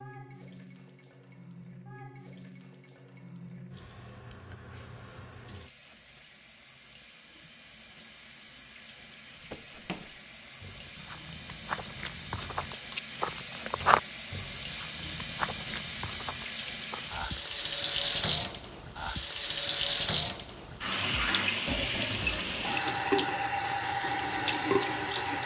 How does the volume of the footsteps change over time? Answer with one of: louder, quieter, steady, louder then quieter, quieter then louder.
louder then quieter.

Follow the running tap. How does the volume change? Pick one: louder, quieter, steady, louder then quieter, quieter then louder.
louder.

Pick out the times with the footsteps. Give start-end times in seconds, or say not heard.
9.5-17.4.